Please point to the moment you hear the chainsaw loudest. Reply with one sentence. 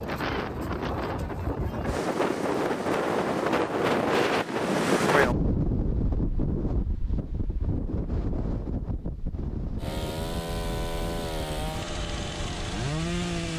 The volume of the chainsaw peaks at 13 seconds.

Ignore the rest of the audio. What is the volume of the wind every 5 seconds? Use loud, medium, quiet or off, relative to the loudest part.
loud, loud, quiet.